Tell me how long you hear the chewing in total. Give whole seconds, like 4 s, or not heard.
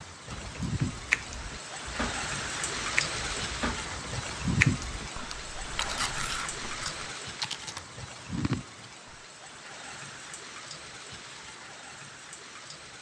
9 s.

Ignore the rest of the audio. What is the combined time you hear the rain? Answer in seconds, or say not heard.
13 s.